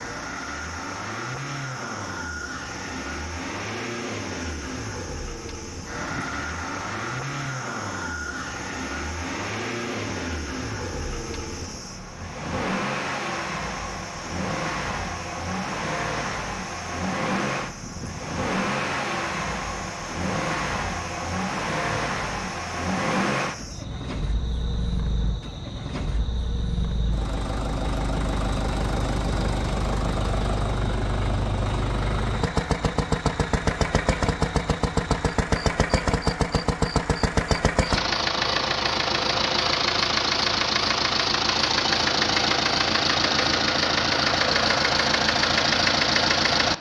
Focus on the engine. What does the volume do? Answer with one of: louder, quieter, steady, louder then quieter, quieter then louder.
louder.